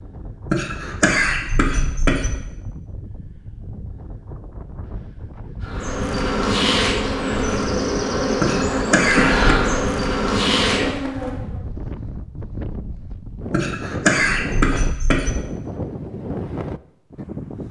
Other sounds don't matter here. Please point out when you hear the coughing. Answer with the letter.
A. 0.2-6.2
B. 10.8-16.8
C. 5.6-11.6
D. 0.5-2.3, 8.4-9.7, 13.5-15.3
D.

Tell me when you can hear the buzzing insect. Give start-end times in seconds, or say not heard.
5.6-11.6.